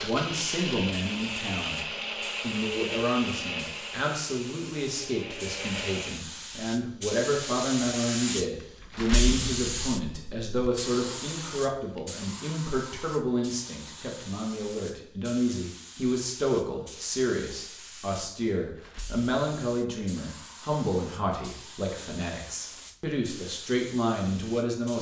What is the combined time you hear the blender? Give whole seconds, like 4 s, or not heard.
6 s.